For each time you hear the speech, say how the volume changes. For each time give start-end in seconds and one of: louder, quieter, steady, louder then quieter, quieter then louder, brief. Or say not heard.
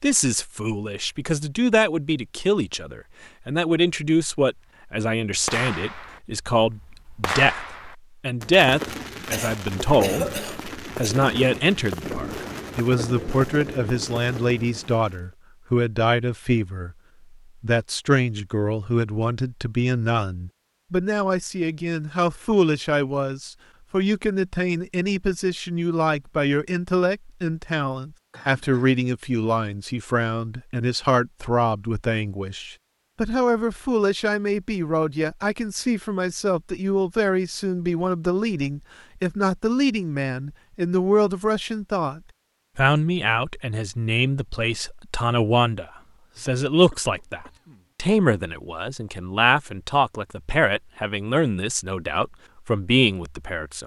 0.0-16.9 steady
17.6-53.8 steady.